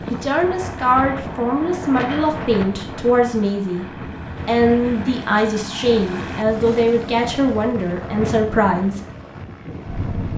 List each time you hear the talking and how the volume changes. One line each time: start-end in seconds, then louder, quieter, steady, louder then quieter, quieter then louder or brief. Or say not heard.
0.1-9.0 steady.